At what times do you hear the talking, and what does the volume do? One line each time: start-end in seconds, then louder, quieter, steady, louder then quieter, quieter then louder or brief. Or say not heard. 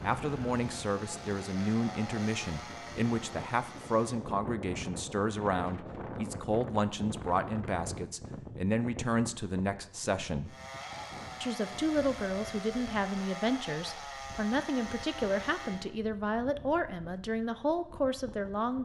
0.0-10.6 steady
11.4-18.8 steady.